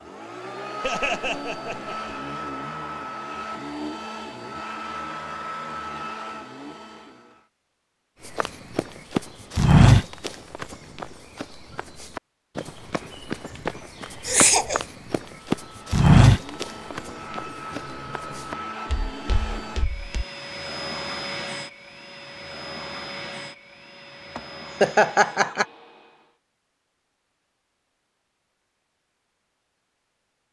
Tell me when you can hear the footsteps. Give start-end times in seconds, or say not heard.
8.2-20.2.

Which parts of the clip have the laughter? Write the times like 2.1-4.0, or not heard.
0.8-2.2, 14.2-14.8, 24.4-25.6.